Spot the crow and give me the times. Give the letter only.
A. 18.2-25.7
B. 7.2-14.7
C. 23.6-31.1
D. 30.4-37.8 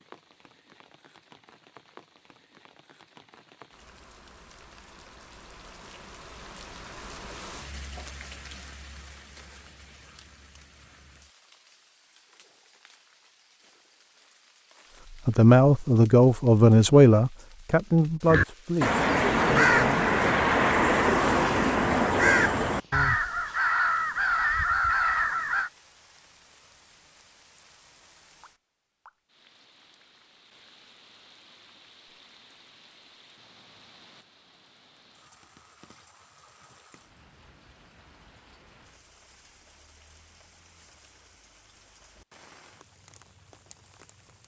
A.